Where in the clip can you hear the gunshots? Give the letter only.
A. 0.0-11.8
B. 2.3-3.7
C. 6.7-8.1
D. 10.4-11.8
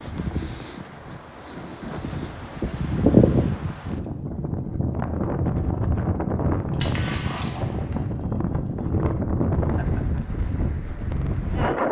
C.